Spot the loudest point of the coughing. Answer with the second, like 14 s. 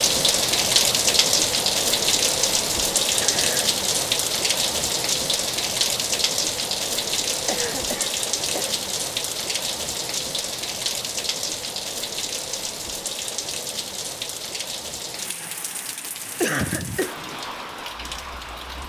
17 s.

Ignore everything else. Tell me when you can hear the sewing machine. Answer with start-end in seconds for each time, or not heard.
not heard.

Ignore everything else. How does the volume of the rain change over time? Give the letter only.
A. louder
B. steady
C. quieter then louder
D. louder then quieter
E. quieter
E.